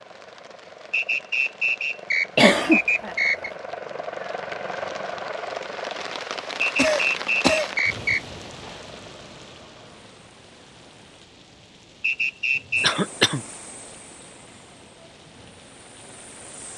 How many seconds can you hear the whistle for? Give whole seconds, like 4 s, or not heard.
5 s.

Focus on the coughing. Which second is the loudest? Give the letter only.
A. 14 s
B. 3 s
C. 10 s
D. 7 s
B.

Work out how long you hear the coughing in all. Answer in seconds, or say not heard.
3 s.